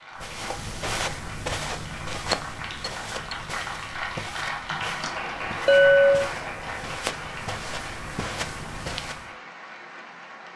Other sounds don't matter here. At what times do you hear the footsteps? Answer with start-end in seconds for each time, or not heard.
0.1-9.3.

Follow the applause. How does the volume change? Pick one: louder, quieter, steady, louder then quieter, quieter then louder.
louder then quieter.